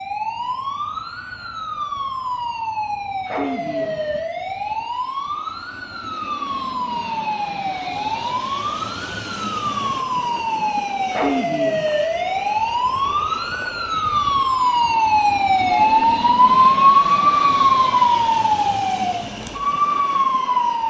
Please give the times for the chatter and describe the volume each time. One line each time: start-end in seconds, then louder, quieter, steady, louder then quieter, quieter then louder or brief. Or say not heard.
not heard.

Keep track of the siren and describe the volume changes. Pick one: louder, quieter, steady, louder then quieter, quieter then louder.
louder.